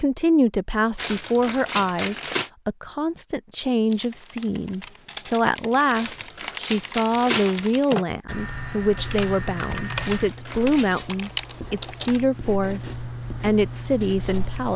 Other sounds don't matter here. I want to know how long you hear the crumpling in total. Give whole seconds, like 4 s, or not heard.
5 s.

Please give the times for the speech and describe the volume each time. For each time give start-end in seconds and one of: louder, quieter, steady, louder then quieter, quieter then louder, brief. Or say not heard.
0.0-14.7 steady.